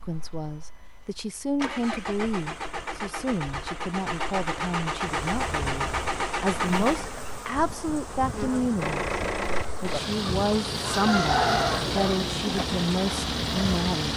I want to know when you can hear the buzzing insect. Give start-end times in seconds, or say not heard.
5.0-14.1.